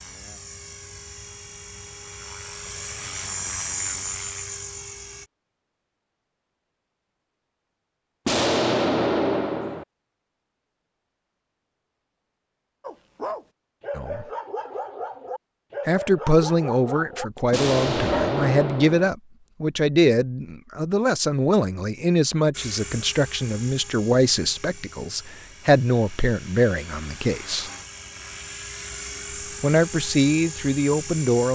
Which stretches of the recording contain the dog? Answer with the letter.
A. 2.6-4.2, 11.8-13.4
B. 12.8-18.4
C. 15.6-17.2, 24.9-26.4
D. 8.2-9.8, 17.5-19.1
B.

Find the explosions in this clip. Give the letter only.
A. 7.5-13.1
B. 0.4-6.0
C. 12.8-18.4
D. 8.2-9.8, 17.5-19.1
D.